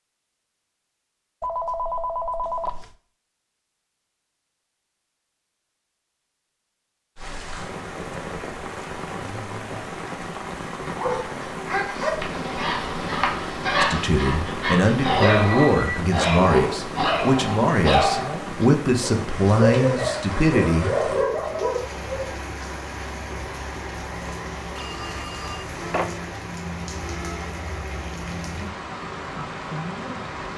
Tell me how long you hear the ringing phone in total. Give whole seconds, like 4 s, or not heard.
4 s.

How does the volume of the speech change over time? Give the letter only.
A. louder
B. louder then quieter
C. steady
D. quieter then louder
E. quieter
C.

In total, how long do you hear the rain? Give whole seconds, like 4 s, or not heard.
23 s.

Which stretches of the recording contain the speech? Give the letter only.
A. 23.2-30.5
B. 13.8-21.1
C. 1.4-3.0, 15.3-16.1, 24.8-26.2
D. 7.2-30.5
B.